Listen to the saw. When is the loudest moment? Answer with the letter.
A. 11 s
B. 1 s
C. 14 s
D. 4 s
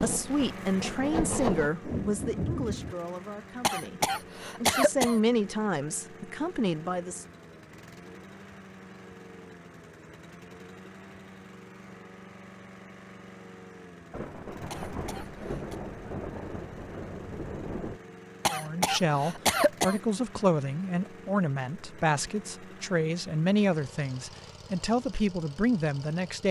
B.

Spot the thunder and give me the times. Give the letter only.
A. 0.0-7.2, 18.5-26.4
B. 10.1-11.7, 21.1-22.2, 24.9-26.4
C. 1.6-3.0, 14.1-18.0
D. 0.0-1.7
C.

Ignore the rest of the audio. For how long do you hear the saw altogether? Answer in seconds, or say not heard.
2 s.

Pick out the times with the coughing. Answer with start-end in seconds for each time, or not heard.
3.6-5.2, 14.7-15.8, 18.4-20.0.